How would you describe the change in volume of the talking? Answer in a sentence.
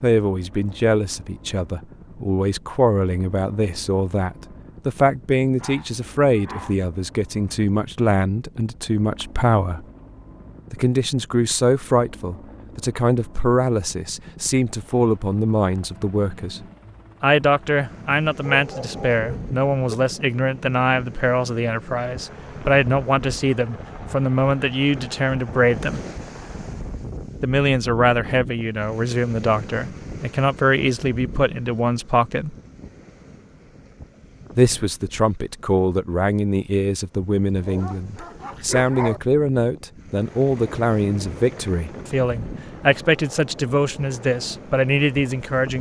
The loudness of the talking stays about the same.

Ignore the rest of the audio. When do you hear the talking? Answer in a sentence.
The talking can be heard from 0.0 to 9.8 s, from 10.7 to 26.0 s, from 27.4 to 32.5 s and from 34.5 to 45.7 s.